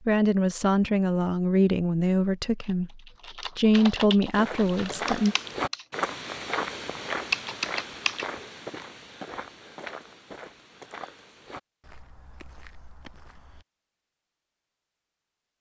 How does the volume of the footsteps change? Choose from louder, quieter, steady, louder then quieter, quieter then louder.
quieter.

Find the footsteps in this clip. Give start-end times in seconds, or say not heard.
4.3-13.7.